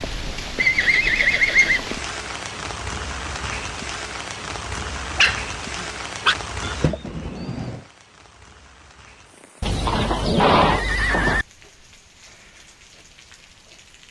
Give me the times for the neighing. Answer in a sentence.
You can hear the neighing from 0.6 to 1.9 s, from 6.6 to 7.8 s and from 9.6 to 11.4 s.